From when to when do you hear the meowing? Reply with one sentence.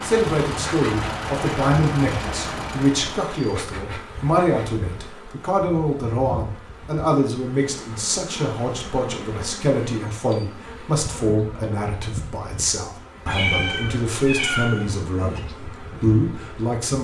You can hear the meowing from 13.2 to 15.4 s.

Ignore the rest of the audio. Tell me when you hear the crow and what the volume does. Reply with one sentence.
You can't hear the crow here.